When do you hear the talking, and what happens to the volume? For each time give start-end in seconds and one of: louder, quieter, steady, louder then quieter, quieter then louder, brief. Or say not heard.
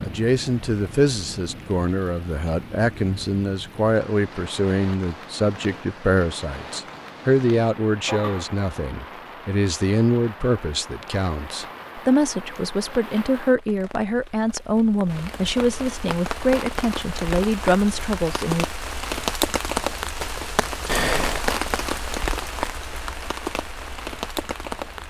0.0-18.6 steady.